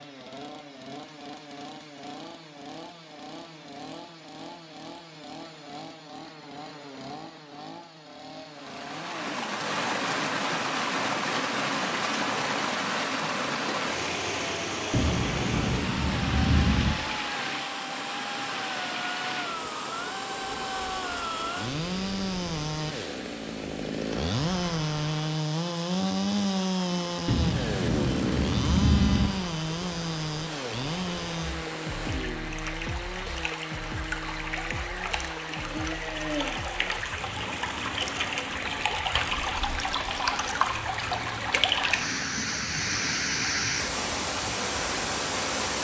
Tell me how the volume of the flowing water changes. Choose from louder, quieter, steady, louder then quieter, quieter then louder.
quieter then louder.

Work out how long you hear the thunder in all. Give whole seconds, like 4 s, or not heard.
4 s.